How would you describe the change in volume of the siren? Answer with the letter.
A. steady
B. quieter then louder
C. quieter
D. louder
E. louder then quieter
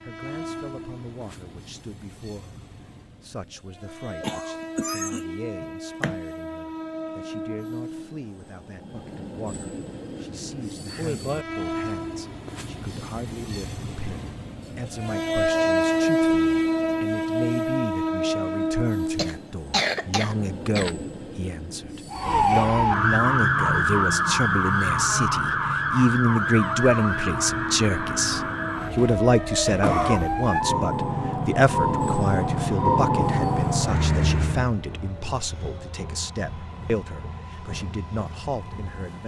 B.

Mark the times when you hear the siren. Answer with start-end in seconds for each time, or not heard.
22.1-34.7.